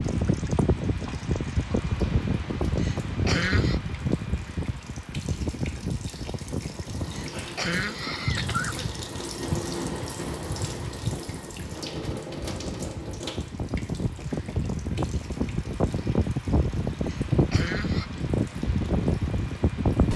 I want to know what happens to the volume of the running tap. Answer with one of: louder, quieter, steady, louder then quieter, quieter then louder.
louder then quieter.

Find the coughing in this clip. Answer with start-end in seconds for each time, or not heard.
2.8-3.8, 7.1-8.9, 17.1-18.1.